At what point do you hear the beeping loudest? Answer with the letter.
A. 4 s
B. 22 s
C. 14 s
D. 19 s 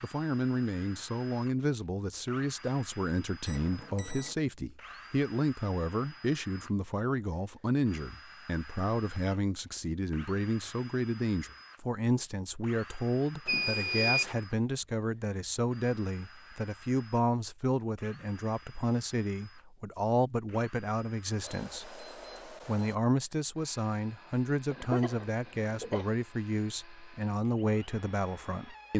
C.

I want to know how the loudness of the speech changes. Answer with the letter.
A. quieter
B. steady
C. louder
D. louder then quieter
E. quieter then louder
B.